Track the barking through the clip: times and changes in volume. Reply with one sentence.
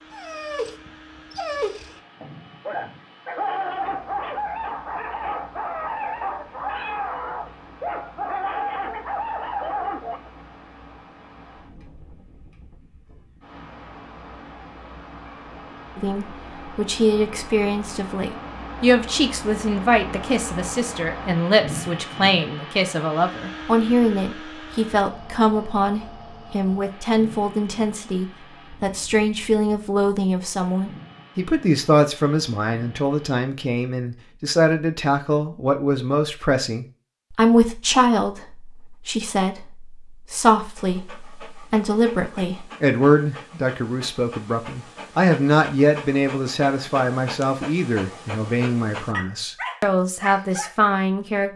The barking can be heard from 0.1 to 10.3 s, at a steady volume; and from 40.6 to 50.8 s, getting louder.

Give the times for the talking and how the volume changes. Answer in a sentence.
You can hear the talking from 15.9 to 51.5 s, at a steady volume.